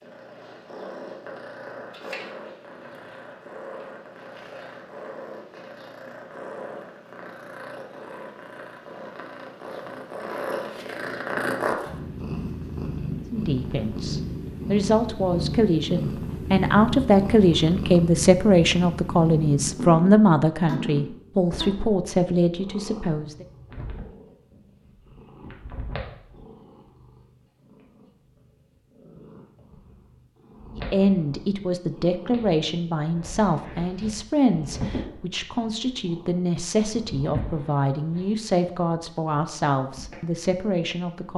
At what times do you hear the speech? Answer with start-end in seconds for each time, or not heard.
13.3-23.4, 30.8-41.3.